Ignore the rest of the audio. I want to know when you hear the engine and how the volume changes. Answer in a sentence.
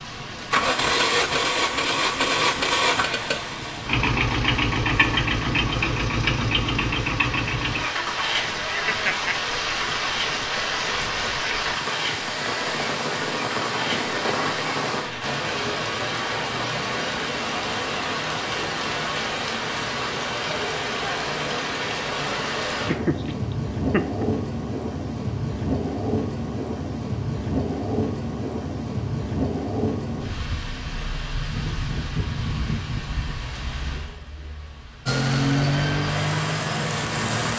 The engine can be heard from 0.0 to 15.3 s, getting quieter; and briefly from 35.0 to 37.5 s.